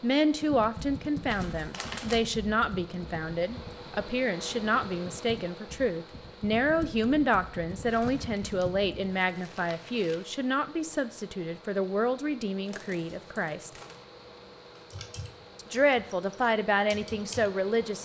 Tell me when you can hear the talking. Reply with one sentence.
You can hear the talking from 0.0 to 13.7 s and from 15.6 to 17.9 s.